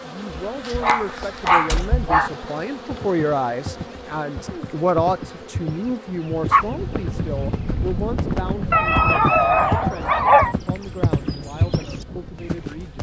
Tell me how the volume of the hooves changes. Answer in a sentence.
The loudness of the hooves goes up.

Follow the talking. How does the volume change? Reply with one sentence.
The loudness of the talking goes up, then down.